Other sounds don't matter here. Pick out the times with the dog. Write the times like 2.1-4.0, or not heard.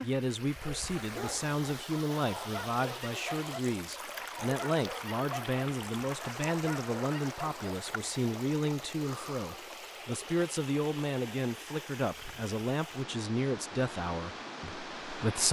0.5-7.6.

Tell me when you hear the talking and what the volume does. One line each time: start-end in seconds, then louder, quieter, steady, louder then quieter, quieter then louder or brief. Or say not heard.
0.0-15.4 steady.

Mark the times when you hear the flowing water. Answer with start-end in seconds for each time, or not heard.
0.0-15.4.